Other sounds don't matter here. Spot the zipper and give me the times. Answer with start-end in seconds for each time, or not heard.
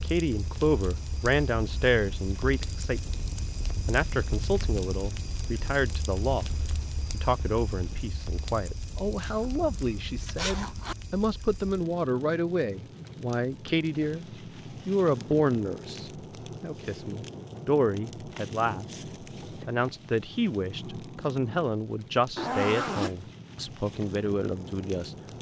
9.2-10.9, 22.4-23.2.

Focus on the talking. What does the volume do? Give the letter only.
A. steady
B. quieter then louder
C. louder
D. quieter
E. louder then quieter
A.